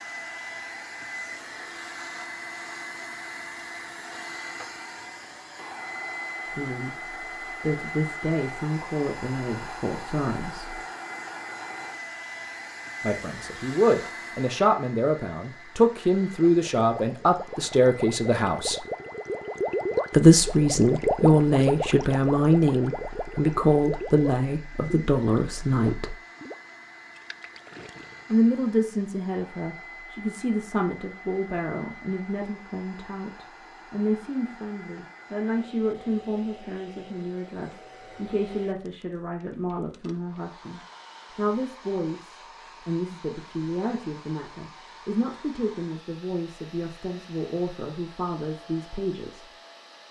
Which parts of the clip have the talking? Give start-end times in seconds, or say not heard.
6.5-10.8, 13.0-18.9, 20.1-26.1, 28.3-49.5.